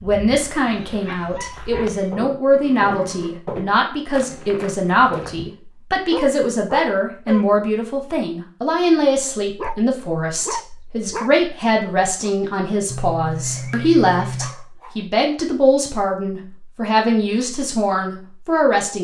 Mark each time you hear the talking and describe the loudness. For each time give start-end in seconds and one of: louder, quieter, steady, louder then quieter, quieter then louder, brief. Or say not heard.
0.0-18.9 steady.